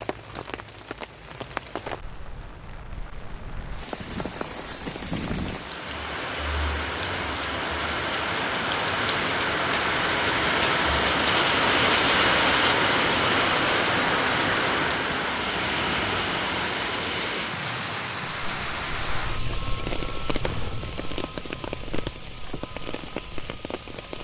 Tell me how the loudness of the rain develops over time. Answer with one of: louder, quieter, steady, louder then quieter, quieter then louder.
louder then quieter.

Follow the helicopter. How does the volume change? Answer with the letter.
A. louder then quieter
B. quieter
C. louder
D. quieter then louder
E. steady
B.